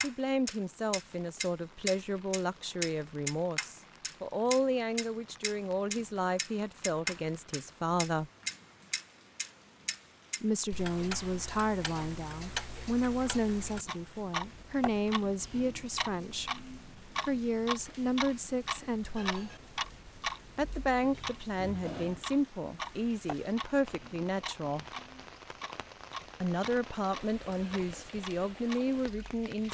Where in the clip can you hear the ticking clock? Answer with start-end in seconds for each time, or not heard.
0.0-29.7.